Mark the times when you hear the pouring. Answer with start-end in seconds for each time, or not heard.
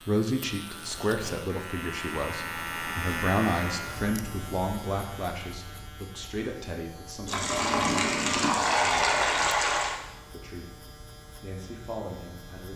7.2-10.0.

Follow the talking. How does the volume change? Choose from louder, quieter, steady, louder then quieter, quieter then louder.
quieter.